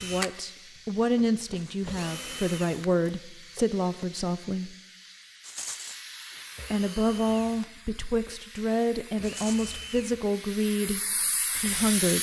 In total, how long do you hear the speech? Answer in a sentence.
You can hear the speech for 10 seconds altogether.